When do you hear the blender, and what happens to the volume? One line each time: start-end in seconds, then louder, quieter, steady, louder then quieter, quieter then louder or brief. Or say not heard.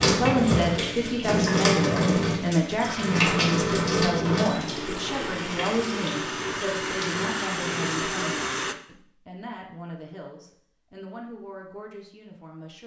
2.8-8.8 louder.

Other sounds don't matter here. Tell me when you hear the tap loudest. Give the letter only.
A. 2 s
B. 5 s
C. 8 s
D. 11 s
A.